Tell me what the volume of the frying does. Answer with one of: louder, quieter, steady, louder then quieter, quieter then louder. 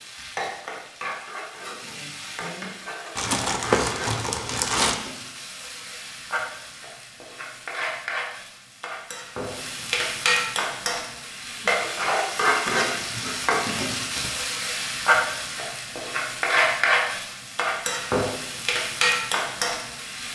louder.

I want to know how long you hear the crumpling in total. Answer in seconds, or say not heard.
3 s.